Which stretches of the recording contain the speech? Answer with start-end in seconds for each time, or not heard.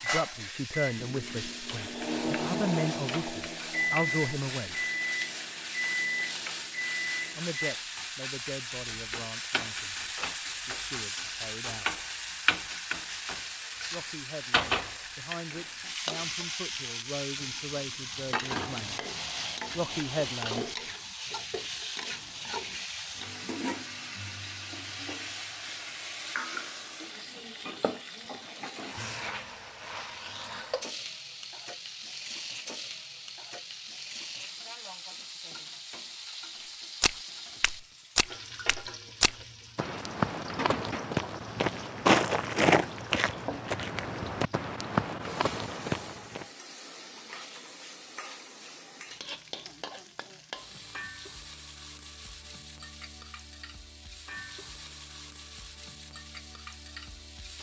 0.0-4.8, 7.3-12.1, 13.9-19.1, 19.8-20.7.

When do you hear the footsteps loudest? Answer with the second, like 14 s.
42 s.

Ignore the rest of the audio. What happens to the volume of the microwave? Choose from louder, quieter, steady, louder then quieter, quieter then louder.
steady.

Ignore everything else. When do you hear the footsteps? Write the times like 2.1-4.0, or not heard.
37.0-46.5.